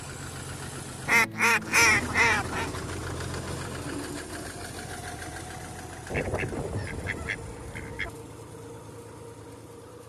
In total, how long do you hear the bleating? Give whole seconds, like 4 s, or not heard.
not heard.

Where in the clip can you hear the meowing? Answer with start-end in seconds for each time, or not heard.
not heard.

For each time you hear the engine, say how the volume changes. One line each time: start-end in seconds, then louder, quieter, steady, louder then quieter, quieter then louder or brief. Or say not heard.
0.0-10.0 quieter.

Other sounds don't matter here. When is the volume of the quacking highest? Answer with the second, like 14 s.
2 s.